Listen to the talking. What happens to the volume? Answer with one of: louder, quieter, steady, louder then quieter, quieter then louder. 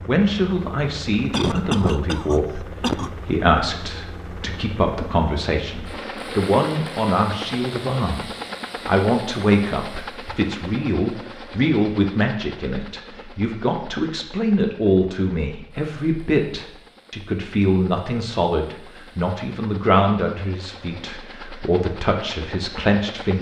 steady.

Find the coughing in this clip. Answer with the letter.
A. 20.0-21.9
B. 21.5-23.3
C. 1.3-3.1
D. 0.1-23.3
C.